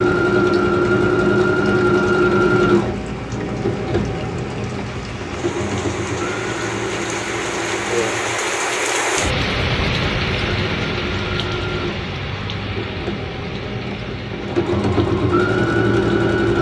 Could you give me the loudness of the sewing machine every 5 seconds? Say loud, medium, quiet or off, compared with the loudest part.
loud, medium, medium, loud.